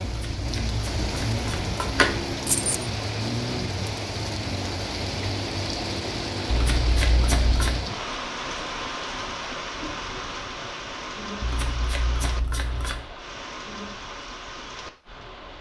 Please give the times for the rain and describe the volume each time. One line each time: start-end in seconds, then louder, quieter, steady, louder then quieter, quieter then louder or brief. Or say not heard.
0.0-15.5 quieter.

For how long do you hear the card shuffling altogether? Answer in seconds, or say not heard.
5 s.